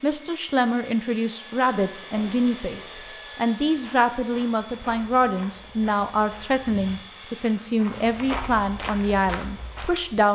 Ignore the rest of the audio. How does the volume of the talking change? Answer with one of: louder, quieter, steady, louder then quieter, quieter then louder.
steady.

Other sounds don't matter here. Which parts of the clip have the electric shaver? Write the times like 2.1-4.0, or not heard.
not heard.